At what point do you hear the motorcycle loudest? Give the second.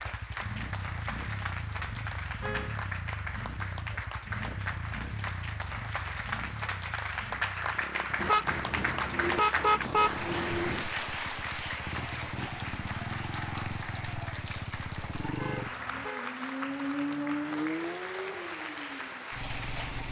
17 s.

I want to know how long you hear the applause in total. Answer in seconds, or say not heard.
20 s.